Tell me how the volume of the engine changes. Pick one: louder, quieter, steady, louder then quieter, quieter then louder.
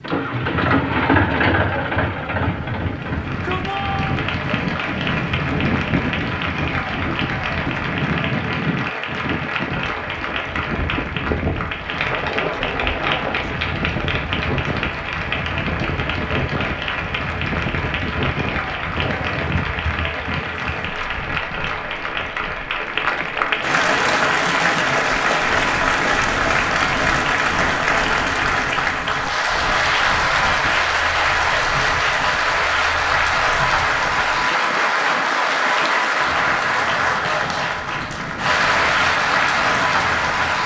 quieter.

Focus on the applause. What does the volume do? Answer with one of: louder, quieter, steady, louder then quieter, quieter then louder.
louder.